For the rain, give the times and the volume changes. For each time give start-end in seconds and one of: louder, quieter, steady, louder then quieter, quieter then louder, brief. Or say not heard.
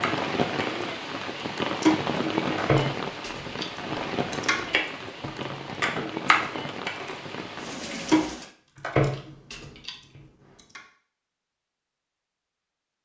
0.0-8.5 quieter.